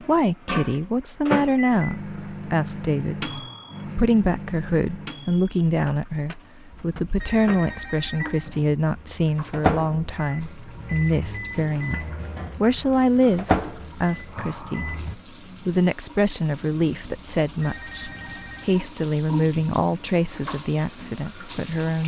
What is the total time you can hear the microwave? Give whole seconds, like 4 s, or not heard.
15 s.